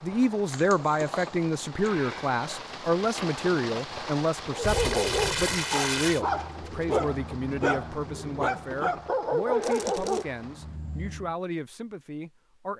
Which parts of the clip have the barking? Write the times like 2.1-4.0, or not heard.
4.5-11.3.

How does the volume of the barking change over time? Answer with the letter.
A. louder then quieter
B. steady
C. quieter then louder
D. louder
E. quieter
B.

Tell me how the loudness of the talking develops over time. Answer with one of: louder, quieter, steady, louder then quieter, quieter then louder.
quieter.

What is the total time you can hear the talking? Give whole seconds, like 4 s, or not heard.
13 s.